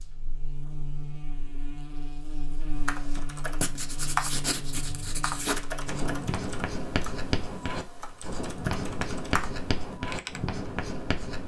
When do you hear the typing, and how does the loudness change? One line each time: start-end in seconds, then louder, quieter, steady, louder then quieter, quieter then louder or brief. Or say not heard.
2.8-10.4 quieter then louder.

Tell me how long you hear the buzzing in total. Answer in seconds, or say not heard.
6 s.